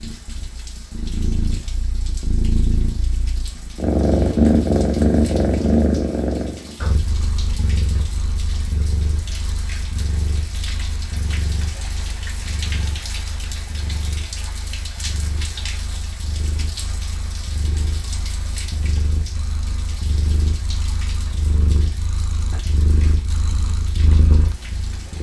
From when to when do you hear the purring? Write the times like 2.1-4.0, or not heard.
0.0-25.1.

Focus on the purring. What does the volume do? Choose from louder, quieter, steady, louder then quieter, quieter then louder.
quieter then louder.